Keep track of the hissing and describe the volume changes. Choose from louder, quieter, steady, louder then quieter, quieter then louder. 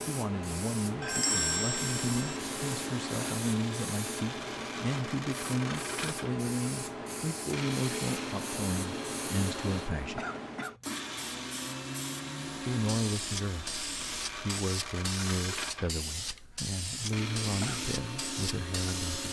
steady.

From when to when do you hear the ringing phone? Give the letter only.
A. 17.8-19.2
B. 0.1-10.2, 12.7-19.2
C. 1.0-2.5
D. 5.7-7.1
C.